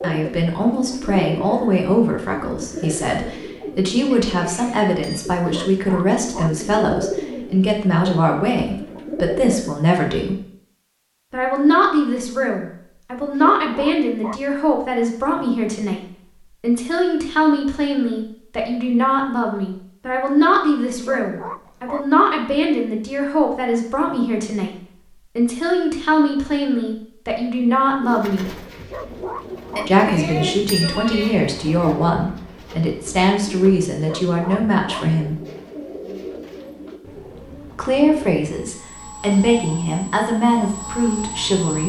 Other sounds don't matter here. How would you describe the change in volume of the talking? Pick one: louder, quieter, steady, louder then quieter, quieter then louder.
steady.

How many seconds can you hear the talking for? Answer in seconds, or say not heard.
36 s.